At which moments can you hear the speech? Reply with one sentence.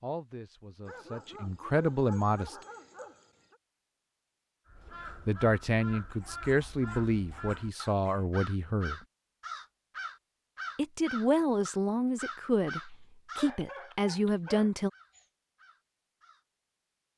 The speech can be heard from 0.0 to 2.5 s, from 5.2 to 9.0 s and from 10.8 to 14.9 s.